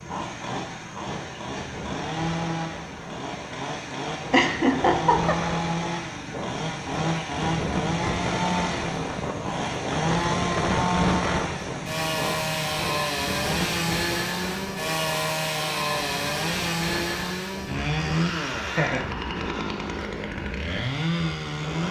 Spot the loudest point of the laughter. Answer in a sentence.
The volume of the laughter peaks at 5 seconds.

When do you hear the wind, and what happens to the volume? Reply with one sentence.
You can hear the wind from 0.0 to 21.8 s, getting louder then quieter.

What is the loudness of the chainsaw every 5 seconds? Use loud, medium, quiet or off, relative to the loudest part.
medium, loud, loud, loud, loud.